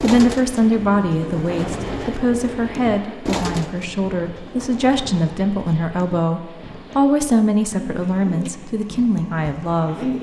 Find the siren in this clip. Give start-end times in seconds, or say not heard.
not heard.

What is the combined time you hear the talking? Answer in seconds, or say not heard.
10 s.